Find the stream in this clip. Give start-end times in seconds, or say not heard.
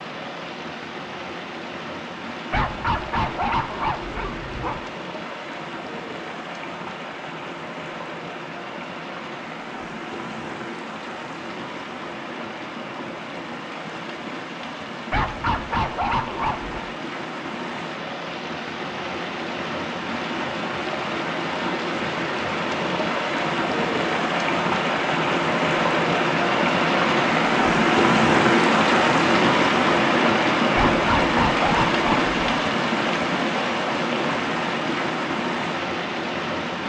0.0-36.8.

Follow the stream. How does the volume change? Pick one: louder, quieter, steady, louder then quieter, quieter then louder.
louder.